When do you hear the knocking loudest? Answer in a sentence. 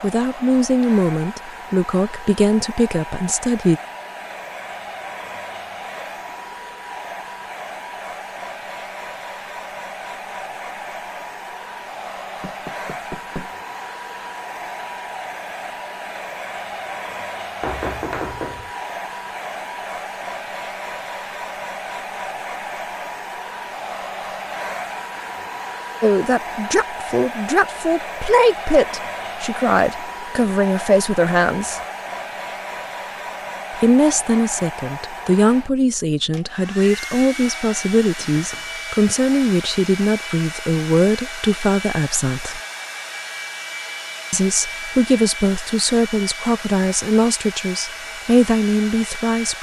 The loudest moment of the knocking is at 18 seconds.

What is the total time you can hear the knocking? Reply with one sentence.
The knocking can be heard for 3 seconds in total.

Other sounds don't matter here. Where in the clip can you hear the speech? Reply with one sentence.
You can hear the speech from 0.0 to 3.8 s, from 26.0 to 31.8 s, from 33.8 to 42.6 s and from 44.3 to 49.5 s.